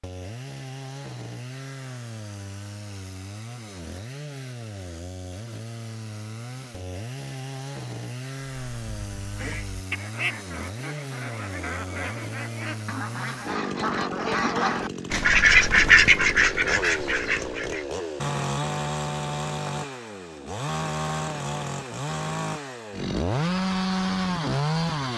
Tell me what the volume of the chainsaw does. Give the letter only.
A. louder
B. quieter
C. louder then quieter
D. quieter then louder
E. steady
A.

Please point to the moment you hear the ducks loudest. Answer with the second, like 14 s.
16 s.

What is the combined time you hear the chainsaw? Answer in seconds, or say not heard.
25 s.